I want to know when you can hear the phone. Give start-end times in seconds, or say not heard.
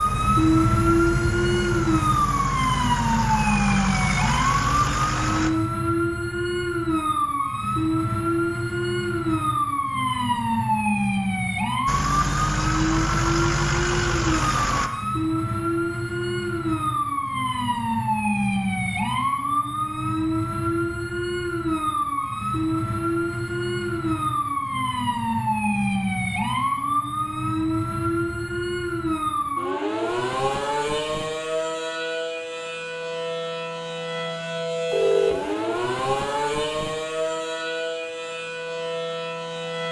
34.9-35.6.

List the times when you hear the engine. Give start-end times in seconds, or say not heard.
0.0-5.5, 11.8-14.9.